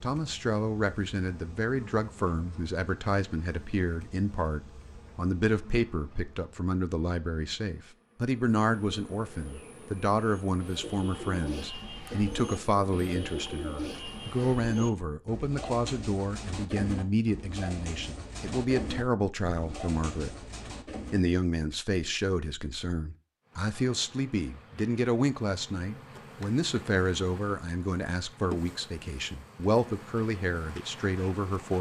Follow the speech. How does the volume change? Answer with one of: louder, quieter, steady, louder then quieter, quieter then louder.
steady.